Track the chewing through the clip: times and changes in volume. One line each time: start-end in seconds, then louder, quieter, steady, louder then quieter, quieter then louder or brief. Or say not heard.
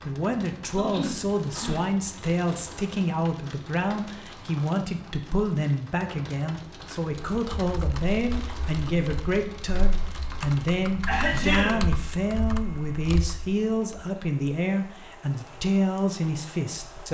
not heard.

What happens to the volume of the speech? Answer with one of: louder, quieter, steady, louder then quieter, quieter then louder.
steady.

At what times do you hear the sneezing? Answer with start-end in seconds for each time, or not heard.
0.8-1.9, 11.1-11.8.